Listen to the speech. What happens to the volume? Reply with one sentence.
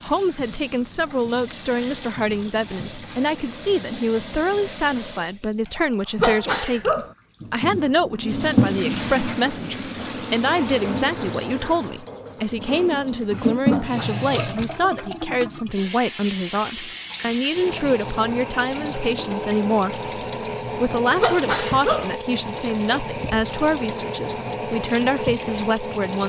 The volume of the speech stays about the same.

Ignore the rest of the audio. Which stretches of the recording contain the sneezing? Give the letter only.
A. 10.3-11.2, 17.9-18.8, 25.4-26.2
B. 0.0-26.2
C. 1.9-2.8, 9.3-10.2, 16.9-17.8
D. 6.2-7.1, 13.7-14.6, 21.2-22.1
D.